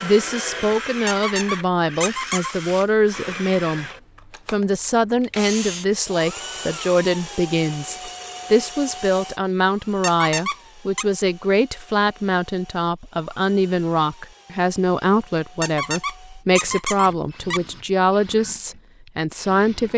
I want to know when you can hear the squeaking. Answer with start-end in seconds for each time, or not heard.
1.1-2.5, 10.0-11.1, 15.6-17.6.